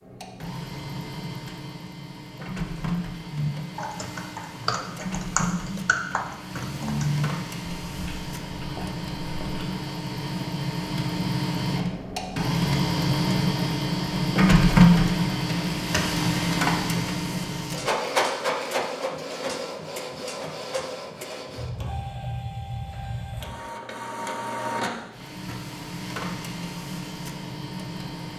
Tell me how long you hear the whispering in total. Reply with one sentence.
You can't hear the whispering here.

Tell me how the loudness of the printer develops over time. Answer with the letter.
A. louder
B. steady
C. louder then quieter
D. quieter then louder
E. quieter
C.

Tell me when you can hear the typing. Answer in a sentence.
You can hear the typing from 3.3 to 9.7 s.